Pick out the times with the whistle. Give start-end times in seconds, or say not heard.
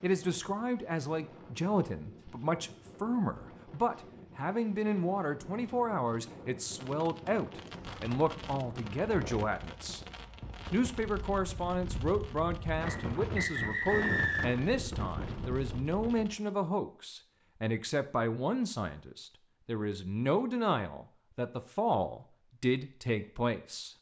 12.8-14.7.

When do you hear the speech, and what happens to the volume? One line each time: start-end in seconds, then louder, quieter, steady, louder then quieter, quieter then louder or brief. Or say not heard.
0.0-10.0 steady
10.7-23.9 steady.